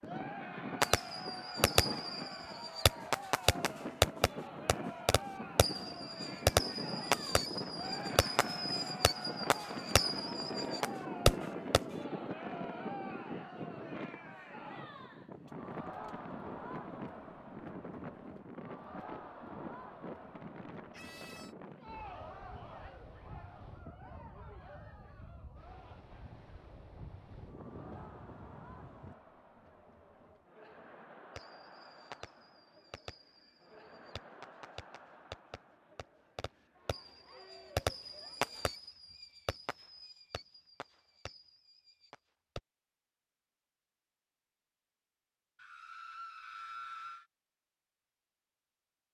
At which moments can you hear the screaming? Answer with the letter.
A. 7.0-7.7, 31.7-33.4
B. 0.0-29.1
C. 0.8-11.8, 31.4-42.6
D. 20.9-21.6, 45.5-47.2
D.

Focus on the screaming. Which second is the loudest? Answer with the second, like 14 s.
47 s.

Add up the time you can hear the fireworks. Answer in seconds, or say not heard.
22 s.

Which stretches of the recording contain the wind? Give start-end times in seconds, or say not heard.
0.0-29.1.